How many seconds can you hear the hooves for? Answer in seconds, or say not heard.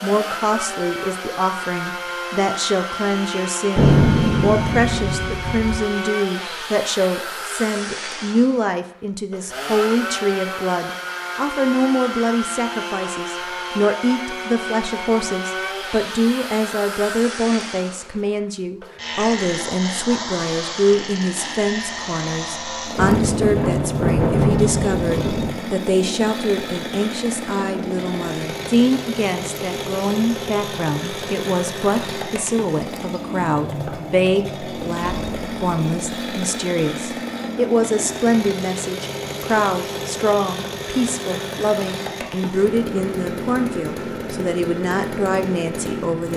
not heard.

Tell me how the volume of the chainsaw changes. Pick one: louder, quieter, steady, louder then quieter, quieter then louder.
steady.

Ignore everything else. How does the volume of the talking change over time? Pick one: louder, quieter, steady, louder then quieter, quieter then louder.
steady.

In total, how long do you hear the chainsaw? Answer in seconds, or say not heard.
46 s.